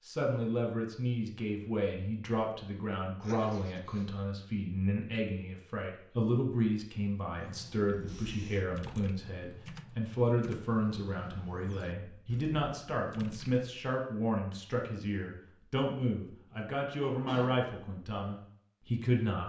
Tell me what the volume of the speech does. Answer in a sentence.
The loudness of the speech stays about the same.